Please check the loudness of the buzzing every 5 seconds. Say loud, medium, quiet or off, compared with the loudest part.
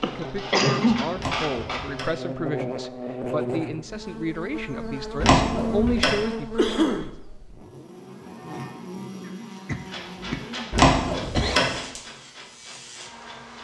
loud, loud, medium.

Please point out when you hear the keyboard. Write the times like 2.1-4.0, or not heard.
not heard.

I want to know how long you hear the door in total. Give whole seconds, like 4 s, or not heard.
3 s.